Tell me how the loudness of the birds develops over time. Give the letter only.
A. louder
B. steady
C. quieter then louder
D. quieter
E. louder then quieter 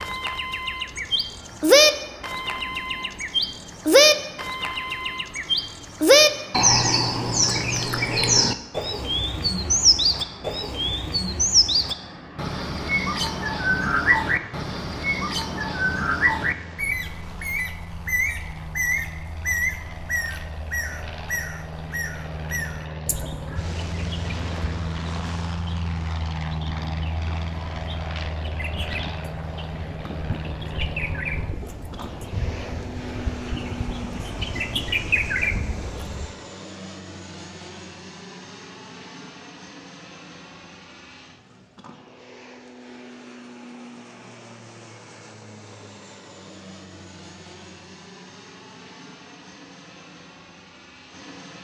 C.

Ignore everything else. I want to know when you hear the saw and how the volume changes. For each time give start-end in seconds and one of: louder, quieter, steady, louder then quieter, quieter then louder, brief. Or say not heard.
not heard.